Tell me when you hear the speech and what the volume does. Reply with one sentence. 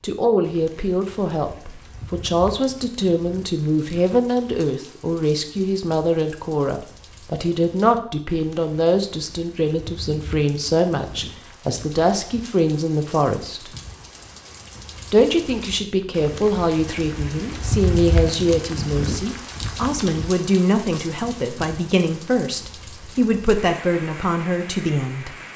You can hear the speech from 0.0 to 13.7 s, at a steady volume; and from 15.1 to 25.3 s, at a steady volume.